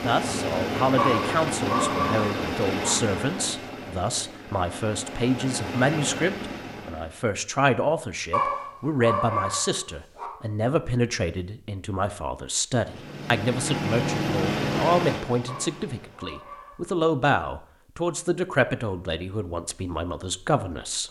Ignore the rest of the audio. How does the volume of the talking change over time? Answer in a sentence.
The loudness of the talking stays about the same.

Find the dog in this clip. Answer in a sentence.
The dog can be heard from 0.9 to 3.0 s, from 8.3 to 10.3 s and from 15.4 to 16.9 s.